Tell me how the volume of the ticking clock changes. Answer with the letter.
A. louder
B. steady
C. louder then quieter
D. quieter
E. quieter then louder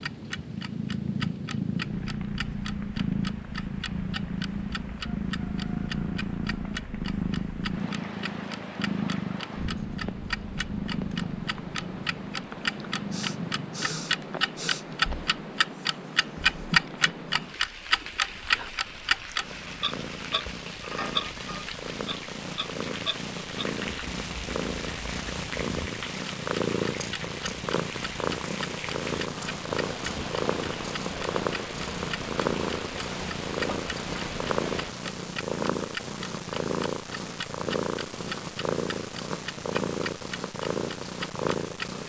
C.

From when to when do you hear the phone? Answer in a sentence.
The phone can't be heard in this clip.